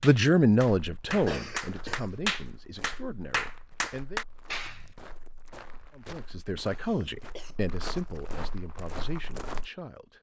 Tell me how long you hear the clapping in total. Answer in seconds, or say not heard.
5 s.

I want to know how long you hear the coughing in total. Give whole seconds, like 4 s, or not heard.
2 s.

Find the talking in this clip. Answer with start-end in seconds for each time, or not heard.
0.0-4.2, 6.0-10.1.